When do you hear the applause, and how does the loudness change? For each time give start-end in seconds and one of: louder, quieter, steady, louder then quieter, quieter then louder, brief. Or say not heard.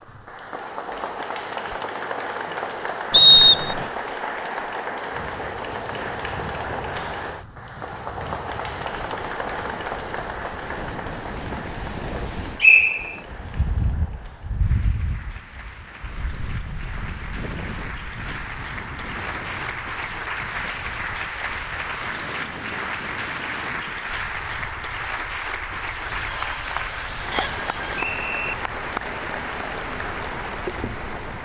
0.0-31.3 quieter then louder.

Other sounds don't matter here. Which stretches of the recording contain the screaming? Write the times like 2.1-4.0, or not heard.
26.0-28.1.